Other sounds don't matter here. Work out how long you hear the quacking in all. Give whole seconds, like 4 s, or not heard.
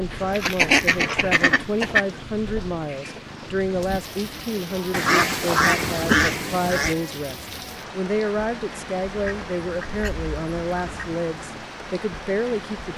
6 s.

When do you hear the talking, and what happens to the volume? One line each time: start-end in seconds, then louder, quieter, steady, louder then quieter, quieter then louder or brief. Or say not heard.
0.0-12.9 steady.